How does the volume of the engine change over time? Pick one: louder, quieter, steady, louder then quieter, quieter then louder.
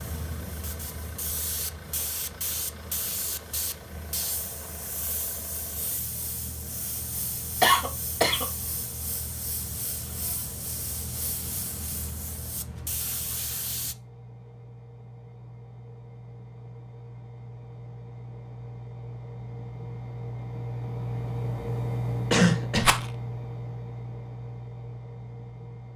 louder.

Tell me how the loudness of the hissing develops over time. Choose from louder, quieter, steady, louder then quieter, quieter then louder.
steady.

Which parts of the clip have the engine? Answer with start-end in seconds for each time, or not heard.
0.0-25.9.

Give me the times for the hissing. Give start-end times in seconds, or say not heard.
0.0-13.9.